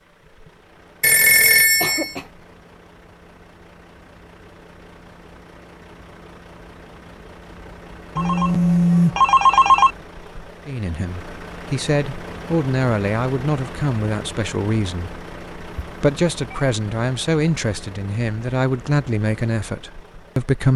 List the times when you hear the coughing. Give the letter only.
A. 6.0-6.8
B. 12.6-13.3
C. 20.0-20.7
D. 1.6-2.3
D.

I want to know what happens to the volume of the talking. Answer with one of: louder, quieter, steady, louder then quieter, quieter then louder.
steady.